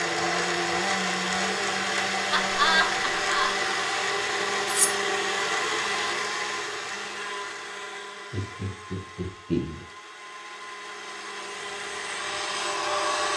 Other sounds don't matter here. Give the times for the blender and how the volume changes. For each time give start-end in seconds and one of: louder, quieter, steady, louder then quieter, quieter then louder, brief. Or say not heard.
0.0-13.3 quieter then louder.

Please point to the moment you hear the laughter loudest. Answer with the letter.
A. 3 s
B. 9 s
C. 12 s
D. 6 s
A.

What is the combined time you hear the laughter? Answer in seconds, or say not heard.
3 s.